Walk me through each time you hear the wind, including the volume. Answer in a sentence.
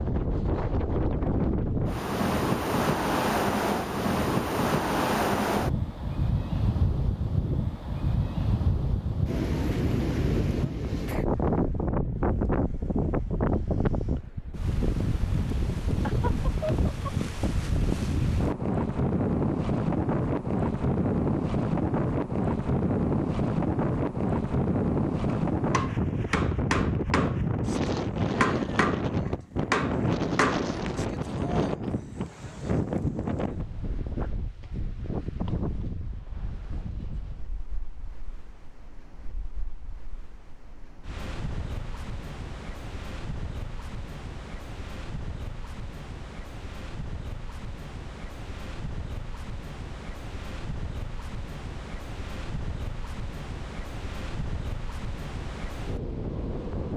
You can hear the wind from 0.0 to 56.9 s, getting quieter.